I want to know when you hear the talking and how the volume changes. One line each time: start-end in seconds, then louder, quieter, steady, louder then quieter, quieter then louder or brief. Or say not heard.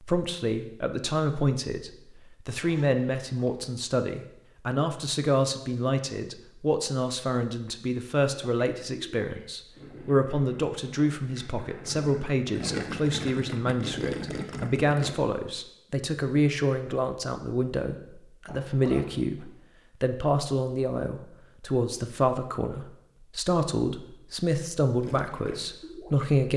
0.0-26.5 steady.